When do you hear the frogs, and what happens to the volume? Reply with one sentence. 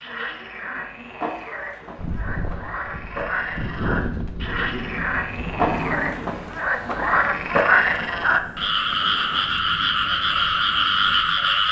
The frogs can be heard from 0.0 to 11.6 s, getting louder.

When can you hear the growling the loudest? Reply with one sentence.
The loudest moment of the growling is at 6 seconds.